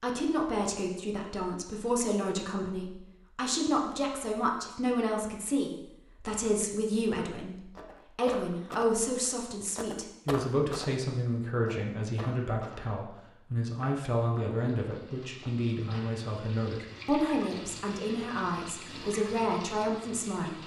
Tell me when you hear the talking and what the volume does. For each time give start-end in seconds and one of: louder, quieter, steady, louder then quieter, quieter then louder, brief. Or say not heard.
0.0-20.6 steady.